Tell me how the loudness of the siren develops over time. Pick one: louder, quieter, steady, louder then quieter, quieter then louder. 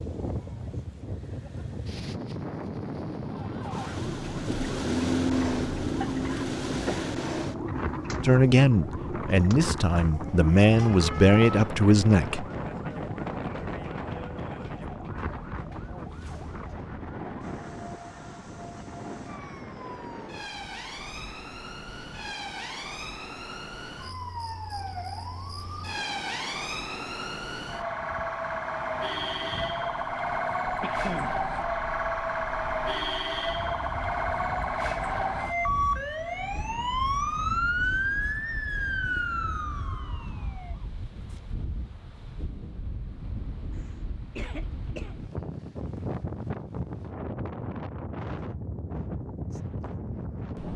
quieter then louder.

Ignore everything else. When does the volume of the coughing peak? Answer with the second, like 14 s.
31 s.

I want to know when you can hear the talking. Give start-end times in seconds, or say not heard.
8.2-12.4.